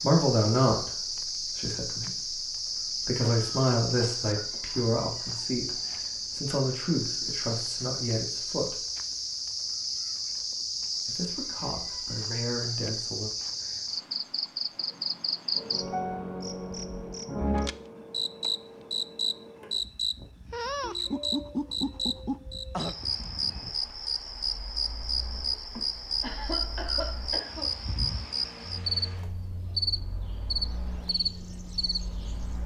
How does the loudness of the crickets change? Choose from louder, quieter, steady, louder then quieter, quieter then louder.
steady.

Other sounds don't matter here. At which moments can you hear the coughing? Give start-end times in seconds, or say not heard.
3.2-4.6, 25.8-27.7.